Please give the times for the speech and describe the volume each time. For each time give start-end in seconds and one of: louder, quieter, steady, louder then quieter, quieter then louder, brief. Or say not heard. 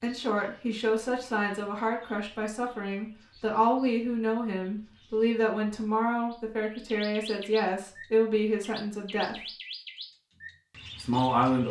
0.0-9.4 steady
11.0-11.6 brief.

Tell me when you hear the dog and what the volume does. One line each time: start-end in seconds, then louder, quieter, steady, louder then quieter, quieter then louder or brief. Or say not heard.
not heard.